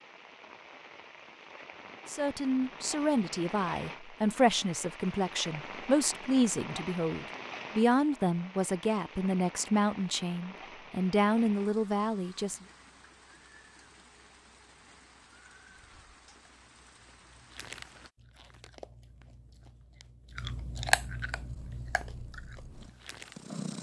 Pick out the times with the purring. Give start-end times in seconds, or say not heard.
21.3-23.7.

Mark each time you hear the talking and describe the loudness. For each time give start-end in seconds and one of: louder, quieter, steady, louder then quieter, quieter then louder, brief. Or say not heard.
2.0-12.6 steady.